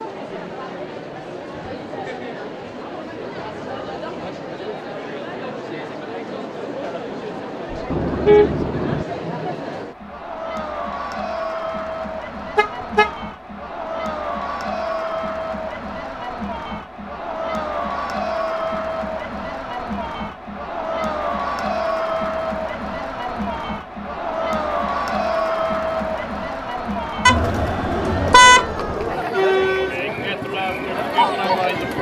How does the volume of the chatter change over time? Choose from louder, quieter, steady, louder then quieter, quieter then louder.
louder.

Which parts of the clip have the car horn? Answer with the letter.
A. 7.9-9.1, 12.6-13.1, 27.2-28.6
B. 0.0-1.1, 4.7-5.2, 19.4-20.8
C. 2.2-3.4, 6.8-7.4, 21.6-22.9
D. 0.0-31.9
A.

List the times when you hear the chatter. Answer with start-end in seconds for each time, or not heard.
0.0-31.9.